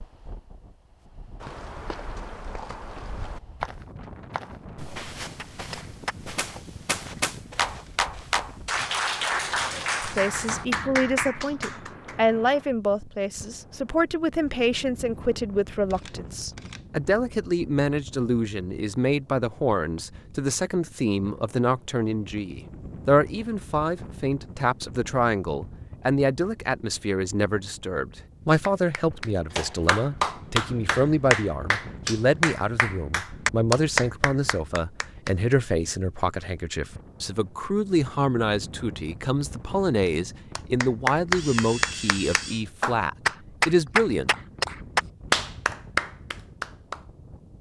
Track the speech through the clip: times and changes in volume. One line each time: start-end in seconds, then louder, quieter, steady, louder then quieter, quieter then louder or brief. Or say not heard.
10.0-44.3 steady.